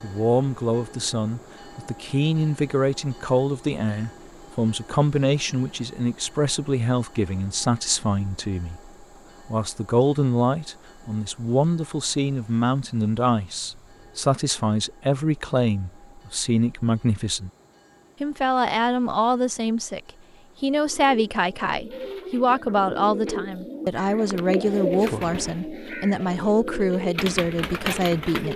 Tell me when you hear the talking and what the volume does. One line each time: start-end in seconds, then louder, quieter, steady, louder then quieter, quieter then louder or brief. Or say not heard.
0.0-17.5 steady
18.2-28.5 steady.